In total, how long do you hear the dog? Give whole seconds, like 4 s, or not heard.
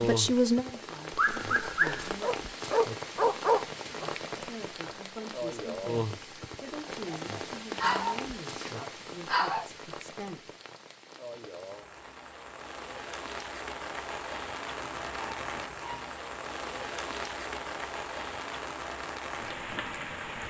7 s.